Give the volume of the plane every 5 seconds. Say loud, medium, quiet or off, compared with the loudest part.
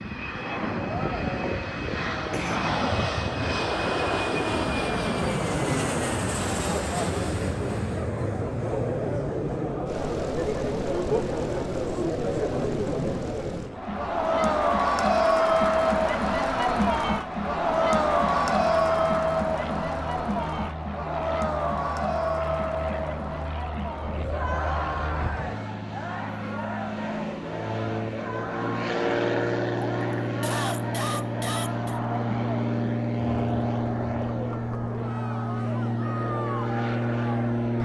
loud, loud, medium, medium, medium, loud, loud, loud.